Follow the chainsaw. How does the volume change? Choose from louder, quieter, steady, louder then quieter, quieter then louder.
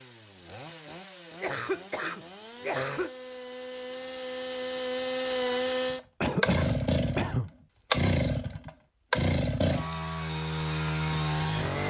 louder.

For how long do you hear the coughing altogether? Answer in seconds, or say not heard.
3 s.